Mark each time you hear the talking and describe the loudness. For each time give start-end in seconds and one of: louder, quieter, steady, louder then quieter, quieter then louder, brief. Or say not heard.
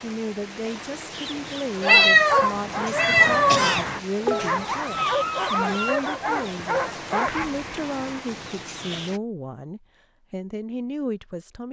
0.0-11.6 steady.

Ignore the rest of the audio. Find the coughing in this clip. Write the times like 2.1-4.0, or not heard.
3.5-4.7.